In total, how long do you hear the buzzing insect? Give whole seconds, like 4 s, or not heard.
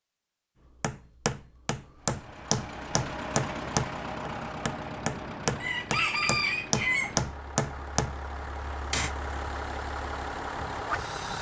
not heard.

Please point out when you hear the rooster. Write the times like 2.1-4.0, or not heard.
5.6-7.2.